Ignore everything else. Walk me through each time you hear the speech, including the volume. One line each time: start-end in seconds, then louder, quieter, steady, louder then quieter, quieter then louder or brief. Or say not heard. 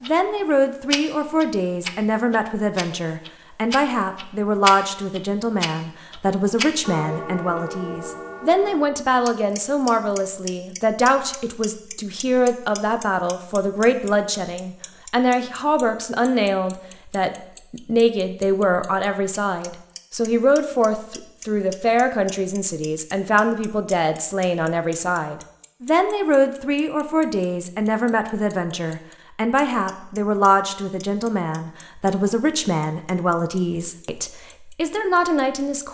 0.0-35.8 steady.